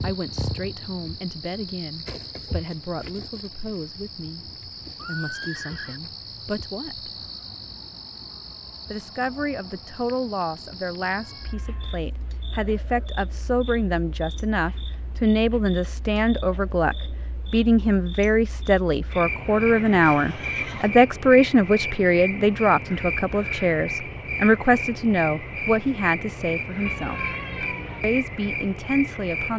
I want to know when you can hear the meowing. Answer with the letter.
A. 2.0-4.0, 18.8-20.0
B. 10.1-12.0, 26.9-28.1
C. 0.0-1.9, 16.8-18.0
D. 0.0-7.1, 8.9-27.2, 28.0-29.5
B.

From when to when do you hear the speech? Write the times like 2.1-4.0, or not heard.
0.0-7.1, 8.9-27.2, 28.0-29.5.